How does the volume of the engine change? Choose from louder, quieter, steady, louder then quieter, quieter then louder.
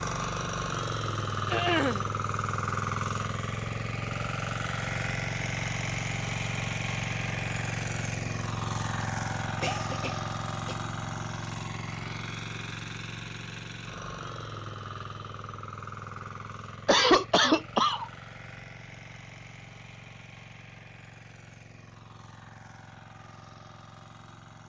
quieter.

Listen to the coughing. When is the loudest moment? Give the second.
17 s.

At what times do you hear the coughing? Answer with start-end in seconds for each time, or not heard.
1.5-2.0, 9.0-10.8, 16.9-18.1.